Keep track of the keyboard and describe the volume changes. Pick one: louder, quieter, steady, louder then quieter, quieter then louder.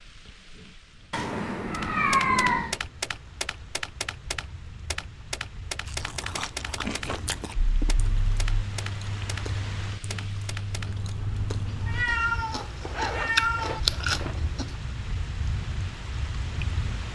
quieter.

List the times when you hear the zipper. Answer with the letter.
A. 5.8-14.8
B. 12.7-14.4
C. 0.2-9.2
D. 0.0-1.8
B.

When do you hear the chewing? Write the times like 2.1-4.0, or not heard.
5.8-14.8.